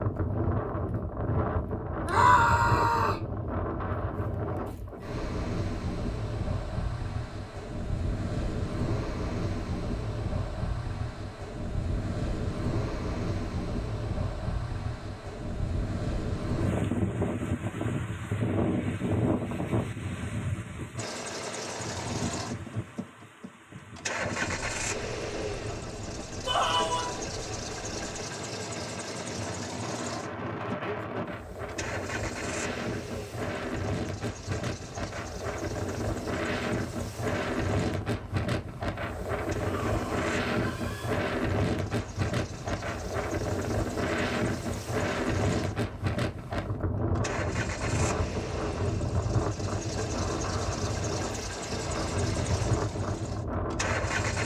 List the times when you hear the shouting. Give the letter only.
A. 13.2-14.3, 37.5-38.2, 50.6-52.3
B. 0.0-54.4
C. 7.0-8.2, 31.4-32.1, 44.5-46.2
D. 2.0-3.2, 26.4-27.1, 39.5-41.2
D.